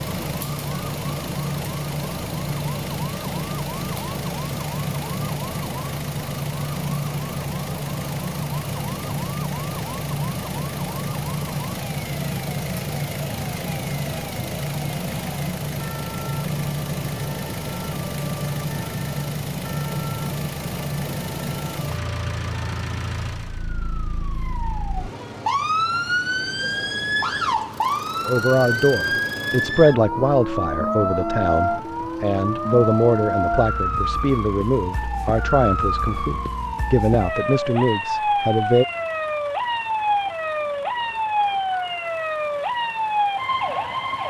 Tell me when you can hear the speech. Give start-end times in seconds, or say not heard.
28.2-38.9.